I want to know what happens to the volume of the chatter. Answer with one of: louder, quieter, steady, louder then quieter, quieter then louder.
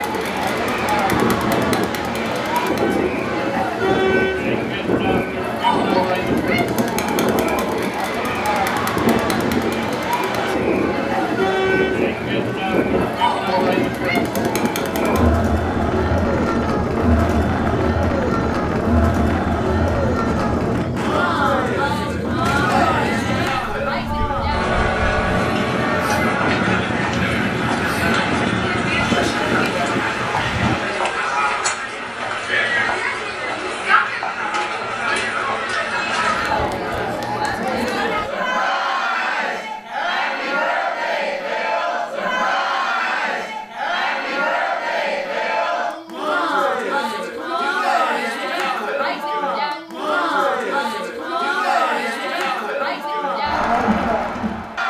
steady.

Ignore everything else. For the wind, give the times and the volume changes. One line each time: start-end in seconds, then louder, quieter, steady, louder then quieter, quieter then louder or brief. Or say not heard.
0.0-30.9 steady.